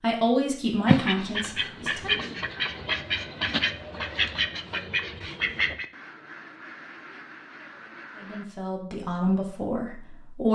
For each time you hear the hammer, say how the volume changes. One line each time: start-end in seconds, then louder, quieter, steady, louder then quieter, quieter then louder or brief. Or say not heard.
not heard.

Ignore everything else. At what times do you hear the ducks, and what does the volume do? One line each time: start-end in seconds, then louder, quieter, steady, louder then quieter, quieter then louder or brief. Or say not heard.
0.8-8.4 quieter.